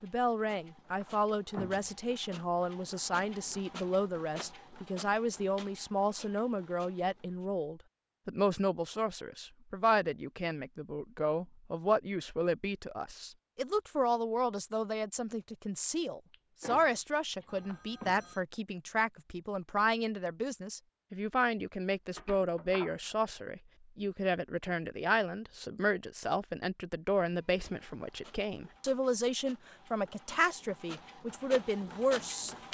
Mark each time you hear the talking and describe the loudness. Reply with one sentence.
You can hear the talking from 0.0 to 32.7 s, at a steady volume.